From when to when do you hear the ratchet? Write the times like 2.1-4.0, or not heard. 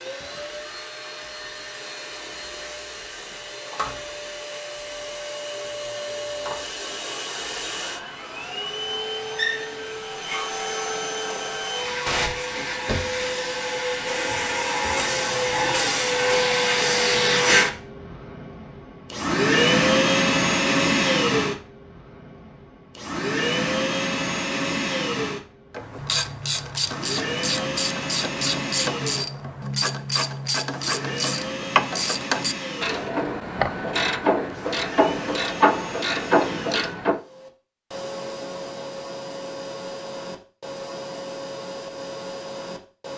25.8-37.2.